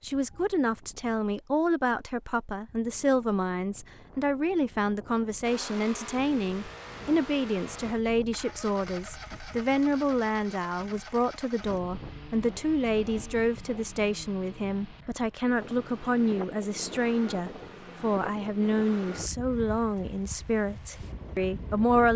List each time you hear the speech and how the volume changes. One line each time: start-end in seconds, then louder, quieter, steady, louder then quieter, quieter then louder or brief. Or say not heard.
0.0-22.1 steady.